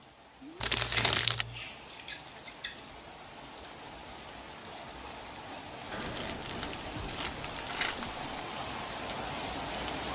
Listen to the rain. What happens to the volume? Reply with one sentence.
The volume of the rain goes up.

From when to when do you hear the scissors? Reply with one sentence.
The scissors can be heard from 0.9 to 3.0 s and from 5.9 to 7.5 s.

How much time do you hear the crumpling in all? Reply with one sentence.
You can hear the crumpling for 3 seconds altogether.